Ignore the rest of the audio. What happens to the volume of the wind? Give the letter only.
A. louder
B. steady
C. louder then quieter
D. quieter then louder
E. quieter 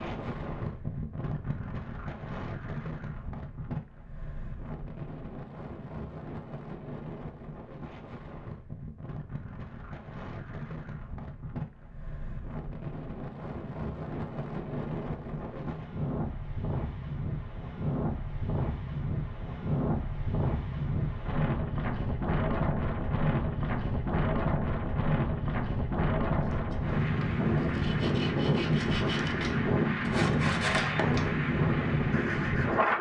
A.